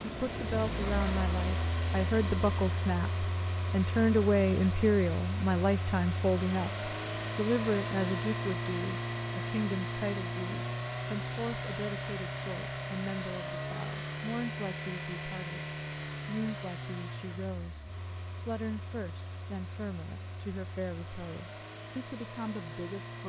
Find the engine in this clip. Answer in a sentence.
You can hear the engine from 0.0 to 23.2 s.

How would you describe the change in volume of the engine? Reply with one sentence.
The loudness of the engine goes down.